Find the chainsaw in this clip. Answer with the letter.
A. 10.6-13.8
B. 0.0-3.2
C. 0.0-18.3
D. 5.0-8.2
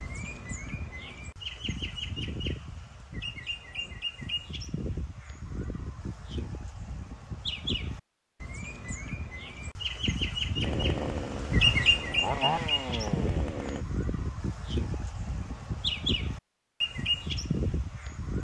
A.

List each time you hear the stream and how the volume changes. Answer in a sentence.
You can't hear the stream here.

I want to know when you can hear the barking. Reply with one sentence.
You can't hear the barking here.